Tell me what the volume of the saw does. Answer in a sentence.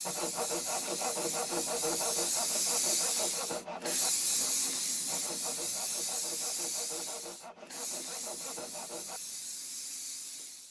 The volume of the saw goes down.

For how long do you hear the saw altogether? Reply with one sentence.
The saw can be heard for 9 seconds in total.